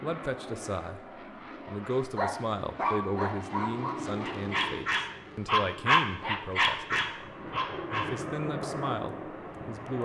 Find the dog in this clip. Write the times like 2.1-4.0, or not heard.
2.1-8.2.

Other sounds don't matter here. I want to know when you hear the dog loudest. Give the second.
6 s.